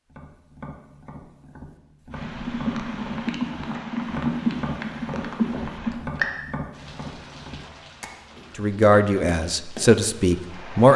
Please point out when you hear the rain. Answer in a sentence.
You can hear the rain from 2.1 to 10.9 s.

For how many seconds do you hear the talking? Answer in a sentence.
The talking can be heard for 2 seconds in total.